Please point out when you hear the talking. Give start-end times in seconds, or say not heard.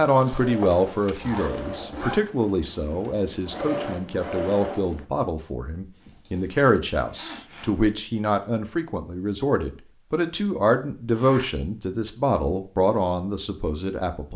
0.0-14.3.